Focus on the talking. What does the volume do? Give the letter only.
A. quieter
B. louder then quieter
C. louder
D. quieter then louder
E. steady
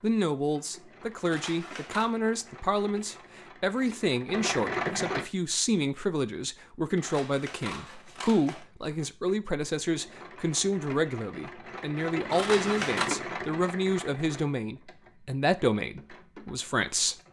E.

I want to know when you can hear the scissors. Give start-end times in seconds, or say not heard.
1.2-2.1, 7.0-8.7, 12.3-13.1.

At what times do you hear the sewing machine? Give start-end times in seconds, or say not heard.
0.0-5.2, 7.8-17.2.